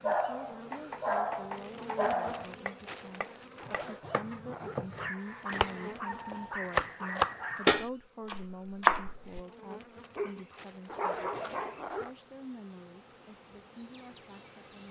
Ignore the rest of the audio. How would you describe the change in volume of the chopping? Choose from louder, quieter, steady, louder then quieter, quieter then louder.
louder.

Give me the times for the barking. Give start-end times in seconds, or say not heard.
0.0-2.5, 5.0-7.8, 10.2-11.8.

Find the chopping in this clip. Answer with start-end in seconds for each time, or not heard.
0.7-9.4.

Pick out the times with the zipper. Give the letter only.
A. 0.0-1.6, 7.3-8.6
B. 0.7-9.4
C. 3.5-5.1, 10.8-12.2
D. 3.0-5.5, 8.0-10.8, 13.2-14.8
C.